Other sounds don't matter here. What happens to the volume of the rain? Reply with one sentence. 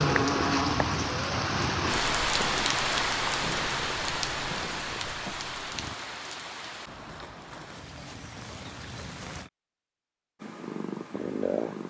The volume of the rain goes down.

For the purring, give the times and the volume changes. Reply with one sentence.
The purring can be heard from 0.0 to 6.0 s, getting quieter; and briefly from 10.4 to 11.8 s.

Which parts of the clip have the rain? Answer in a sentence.
You can hear the rain from 0.0 to 9.5 s.